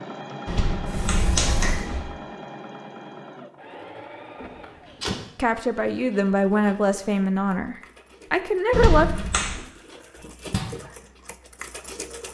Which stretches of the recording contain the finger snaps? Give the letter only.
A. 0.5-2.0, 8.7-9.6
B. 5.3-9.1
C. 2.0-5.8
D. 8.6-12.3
A.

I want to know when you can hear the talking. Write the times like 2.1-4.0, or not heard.
5.3-9.1.